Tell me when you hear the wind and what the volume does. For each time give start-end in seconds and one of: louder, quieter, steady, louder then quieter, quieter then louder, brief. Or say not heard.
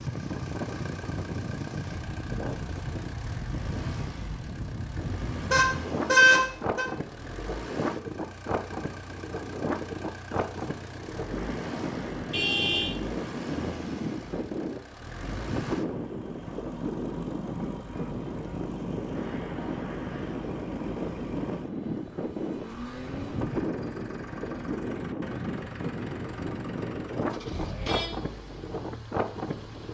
0.0-29.8 steady.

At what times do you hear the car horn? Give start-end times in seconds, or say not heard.
5.5-6.8, 12.3-12.9, 27.4-28.1.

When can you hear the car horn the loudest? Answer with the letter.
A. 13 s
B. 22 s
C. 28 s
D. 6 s
D.